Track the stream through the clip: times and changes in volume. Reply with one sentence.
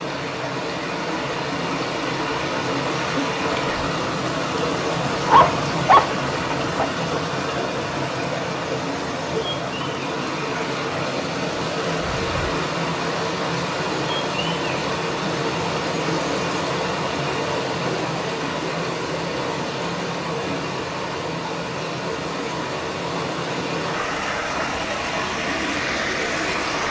You can hear the stream from 0.0 to 26.8 s, at a steady volume.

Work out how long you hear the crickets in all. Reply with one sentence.
The crickets can't be heard in this clip.